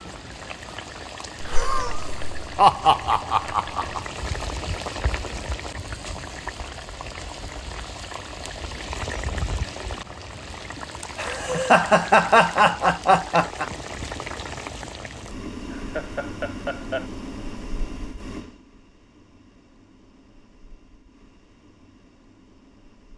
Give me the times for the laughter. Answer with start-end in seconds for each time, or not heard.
1.4-4.0, 11.0-13.7, 15.7-17.1.